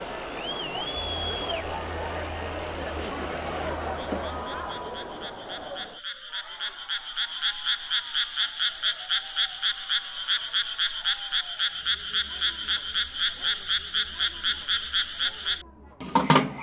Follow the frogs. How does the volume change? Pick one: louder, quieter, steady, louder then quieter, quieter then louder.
louder.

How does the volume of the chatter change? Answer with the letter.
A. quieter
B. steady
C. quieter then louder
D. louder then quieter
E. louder
A.